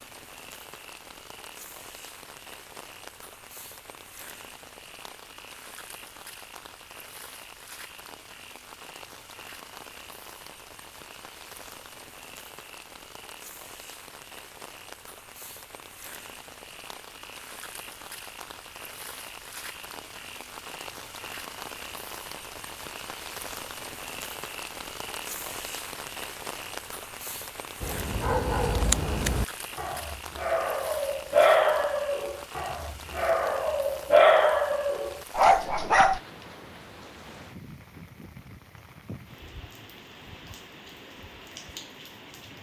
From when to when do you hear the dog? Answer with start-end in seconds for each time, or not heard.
27.8-36.2.